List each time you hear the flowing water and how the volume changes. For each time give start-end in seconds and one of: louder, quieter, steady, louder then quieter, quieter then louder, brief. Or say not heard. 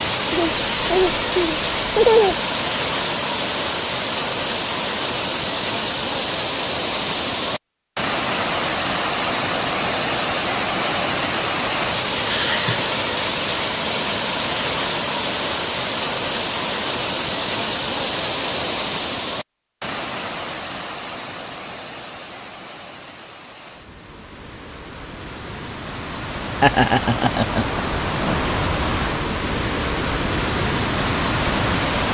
0.0-32.0 quieter then louder.